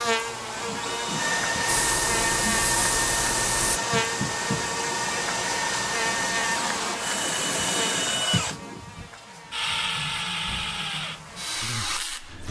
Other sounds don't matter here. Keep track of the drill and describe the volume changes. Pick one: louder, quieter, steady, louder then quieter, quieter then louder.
steady.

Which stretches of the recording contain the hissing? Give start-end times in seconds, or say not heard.
1.6-3.8.